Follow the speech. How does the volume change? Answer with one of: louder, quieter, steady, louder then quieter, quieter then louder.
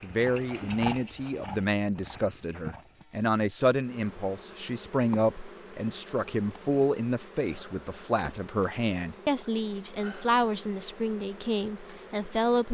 steady.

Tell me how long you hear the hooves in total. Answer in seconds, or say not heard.
3 s.